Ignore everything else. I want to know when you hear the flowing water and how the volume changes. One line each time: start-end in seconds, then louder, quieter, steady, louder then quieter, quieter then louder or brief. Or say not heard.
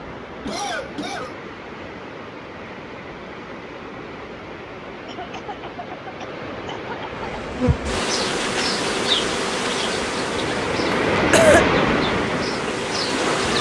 0.0-13.5 louder.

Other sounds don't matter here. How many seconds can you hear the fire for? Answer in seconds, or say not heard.
not heard.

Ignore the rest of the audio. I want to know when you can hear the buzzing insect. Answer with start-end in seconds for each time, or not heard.
7.1-13.5.